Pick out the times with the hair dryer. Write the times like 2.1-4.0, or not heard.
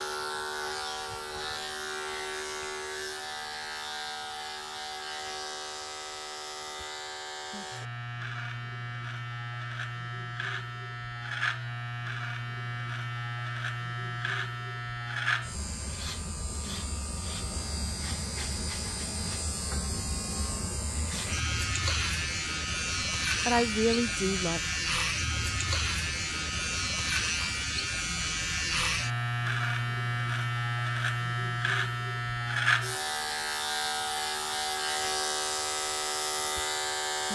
not heard.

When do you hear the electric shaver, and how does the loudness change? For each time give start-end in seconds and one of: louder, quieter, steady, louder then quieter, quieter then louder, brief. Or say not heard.
0.0-37.3 louder.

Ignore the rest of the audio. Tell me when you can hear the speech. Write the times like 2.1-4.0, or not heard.
23.4-24.6.